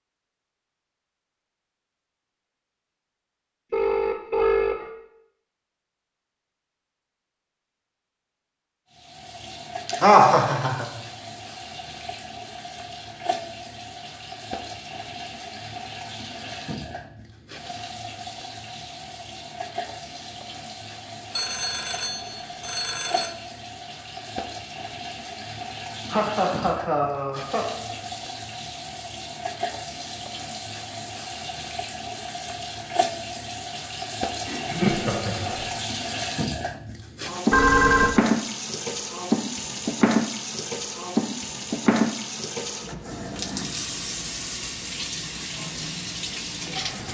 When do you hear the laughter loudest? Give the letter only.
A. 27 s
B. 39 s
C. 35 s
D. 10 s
D.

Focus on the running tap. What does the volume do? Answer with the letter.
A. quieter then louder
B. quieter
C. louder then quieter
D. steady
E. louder
E.